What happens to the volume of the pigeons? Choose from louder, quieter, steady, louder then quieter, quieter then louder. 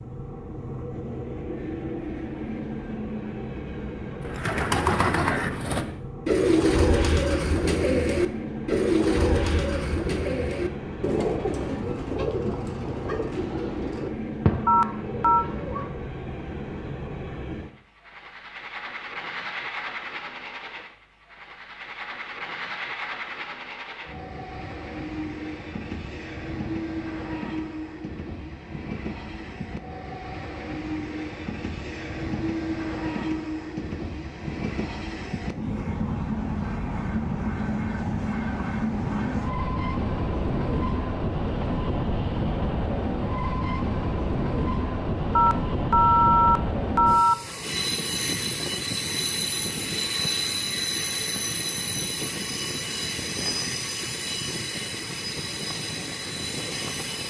quieter.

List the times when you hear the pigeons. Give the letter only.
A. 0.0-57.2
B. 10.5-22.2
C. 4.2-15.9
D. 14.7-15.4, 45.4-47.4
C.